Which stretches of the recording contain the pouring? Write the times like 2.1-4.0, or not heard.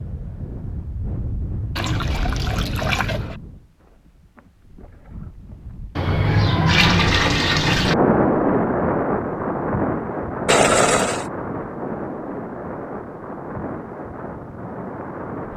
1.8-3.4, 6.0-8.0, 10.4-11.3.